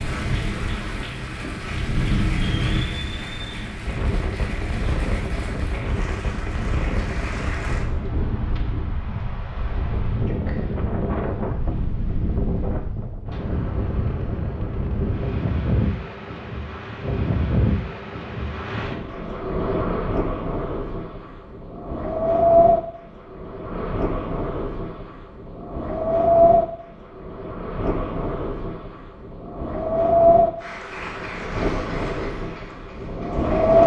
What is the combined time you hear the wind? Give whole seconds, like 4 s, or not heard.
34 s.